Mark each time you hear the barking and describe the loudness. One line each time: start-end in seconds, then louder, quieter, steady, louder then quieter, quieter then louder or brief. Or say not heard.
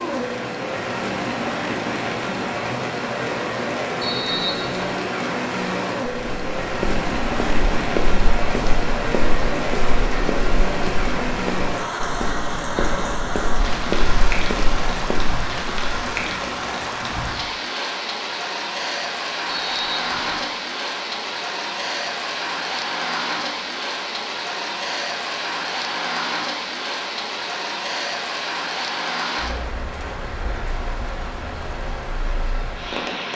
not heard.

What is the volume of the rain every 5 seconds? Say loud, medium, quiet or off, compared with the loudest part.
loud, loud, loud, loud, loud, loud, medium.